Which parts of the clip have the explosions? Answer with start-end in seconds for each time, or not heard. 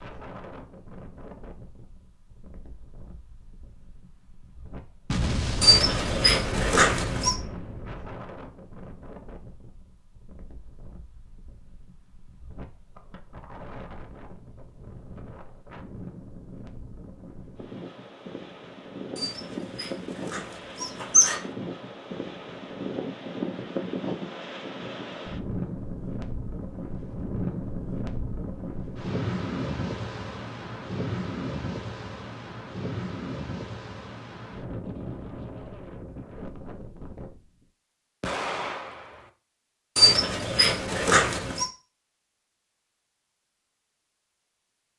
5.0-8.2, 38.2-39.3.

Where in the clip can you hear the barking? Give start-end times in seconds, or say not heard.
5.6-7.3, 19.1-21.4, 40.0-41.7.